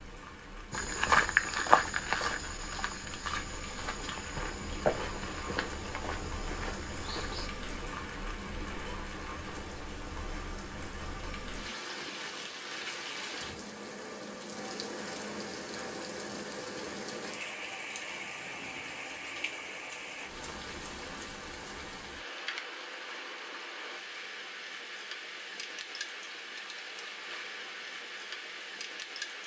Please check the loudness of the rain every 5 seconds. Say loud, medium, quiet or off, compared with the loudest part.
medium, loud, loud, loud, loud, loud.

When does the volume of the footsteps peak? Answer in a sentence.
The loudest moment of the footsteps is at 1 second.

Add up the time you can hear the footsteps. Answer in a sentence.
You can hear the footsteps for 7 seconds altogether.